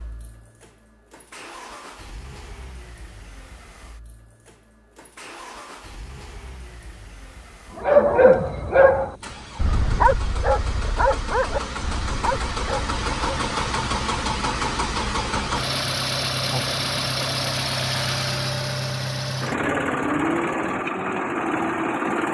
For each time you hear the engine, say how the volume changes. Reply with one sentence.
You can hear the engine from 0.0 to 22.2 s, getting louder.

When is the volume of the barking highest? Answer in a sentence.
The loudest moment of the barking is at 8 seconds.